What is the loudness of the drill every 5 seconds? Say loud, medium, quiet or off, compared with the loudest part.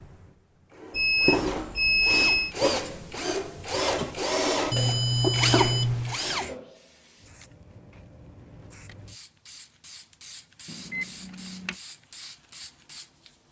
loud, loud, off.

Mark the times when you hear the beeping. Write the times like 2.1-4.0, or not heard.
0.9-2.5, 4.7-6.2, 10.7-11.8.